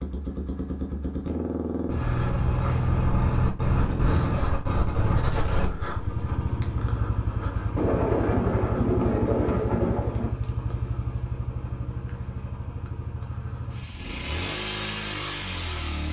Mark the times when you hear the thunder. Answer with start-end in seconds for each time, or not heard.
7.8-10.3.